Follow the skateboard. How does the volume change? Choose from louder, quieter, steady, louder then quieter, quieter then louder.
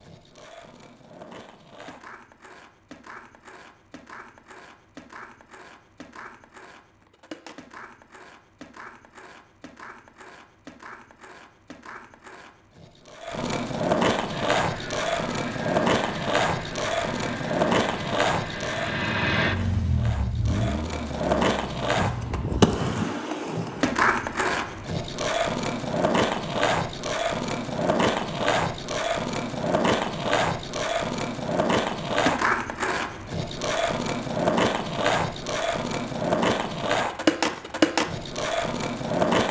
louder.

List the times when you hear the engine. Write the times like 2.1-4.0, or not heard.
14.6-22.4.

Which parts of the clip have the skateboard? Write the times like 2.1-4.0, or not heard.
0.0-39.4.